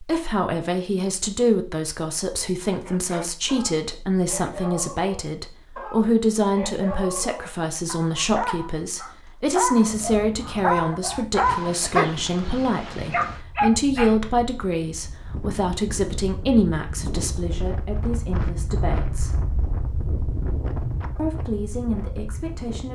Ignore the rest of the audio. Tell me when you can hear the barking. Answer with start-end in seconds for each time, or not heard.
2.6-14.2.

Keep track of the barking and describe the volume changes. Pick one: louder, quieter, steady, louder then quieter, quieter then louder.
louder.